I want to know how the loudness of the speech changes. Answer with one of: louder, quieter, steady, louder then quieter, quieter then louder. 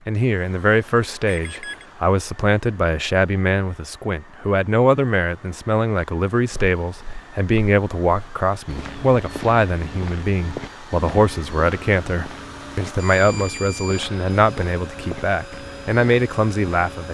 steady.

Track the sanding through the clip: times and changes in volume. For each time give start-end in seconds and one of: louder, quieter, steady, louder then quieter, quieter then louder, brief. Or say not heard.
not heard.